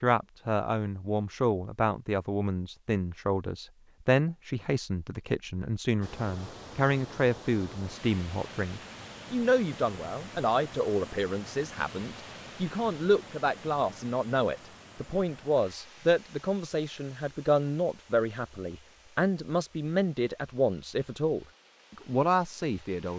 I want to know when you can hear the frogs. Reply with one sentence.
The frogs can't be heard in this clip.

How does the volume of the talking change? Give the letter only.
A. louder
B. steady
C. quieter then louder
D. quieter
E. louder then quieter
B.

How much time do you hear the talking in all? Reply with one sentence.
The talking can be heard for 23 seconds in total.